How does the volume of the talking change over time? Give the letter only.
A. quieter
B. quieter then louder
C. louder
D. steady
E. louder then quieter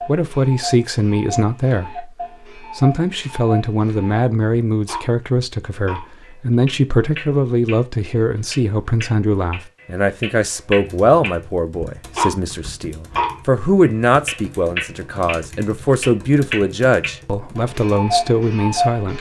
D.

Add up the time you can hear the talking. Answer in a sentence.
You can hear the talking for 19 seconds altogether.